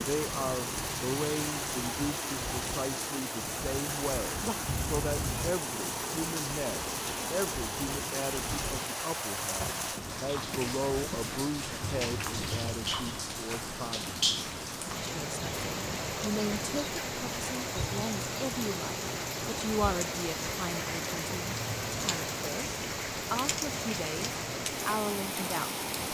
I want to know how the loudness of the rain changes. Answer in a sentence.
The volume of the rain stays about the same.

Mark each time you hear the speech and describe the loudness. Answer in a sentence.
The speech can be heard from 0.0 to 25.8 s, at a steady volume.